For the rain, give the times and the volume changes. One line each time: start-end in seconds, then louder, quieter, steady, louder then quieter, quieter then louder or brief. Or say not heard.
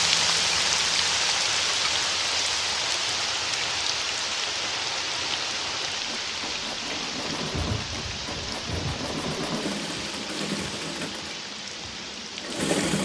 0.0-12.8 quieter.